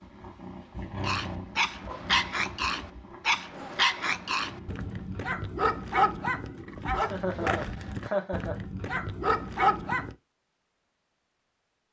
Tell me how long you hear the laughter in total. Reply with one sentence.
The laughter can be heard for 2 seconds in total.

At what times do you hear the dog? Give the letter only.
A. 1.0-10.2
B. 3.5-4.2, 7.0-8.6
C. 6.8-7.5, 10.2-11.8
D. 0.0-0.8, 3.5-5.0
A.